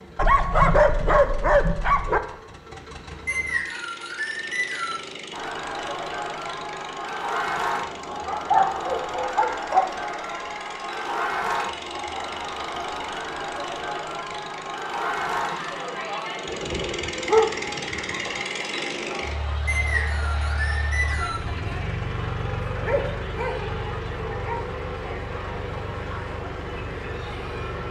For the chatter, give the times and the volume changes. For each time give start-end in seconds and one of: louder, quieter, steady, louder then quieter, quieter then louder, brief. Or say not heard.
5.3-27.8 quieter.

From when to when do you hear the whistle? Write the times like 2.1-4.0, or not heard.
3.2-5.0, 19.6-21.4.